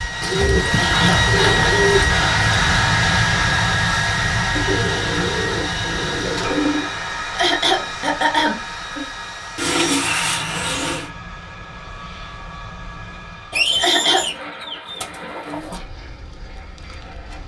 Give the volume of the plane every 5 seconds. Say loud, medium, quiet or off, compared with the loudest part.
loud, medium, quiet, quiet.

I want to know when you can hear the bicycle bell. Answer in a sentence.
The bicycle bell can't be heard in this clip.